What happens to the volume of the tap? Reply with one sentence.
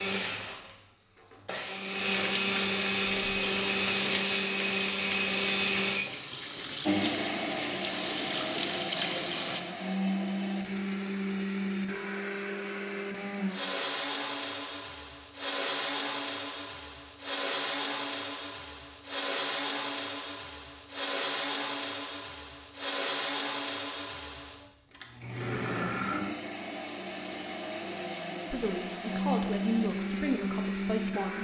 The loudness of the tap goes up.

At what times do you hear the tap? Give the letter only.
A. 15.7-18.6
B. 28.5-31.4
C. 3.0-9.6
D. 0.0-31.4
C.